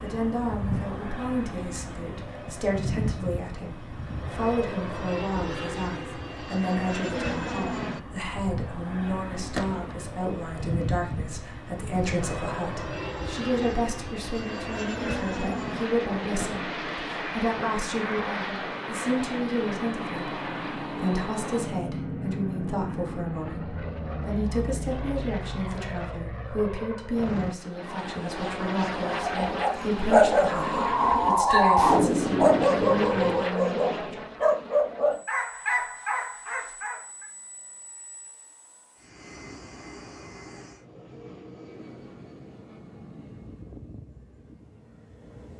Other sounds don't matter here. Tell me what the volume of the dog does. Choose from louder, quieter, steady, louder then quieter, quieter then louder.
louder then quieter.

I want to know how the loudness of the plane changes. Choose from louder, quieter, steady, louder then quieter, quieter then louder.
quieter.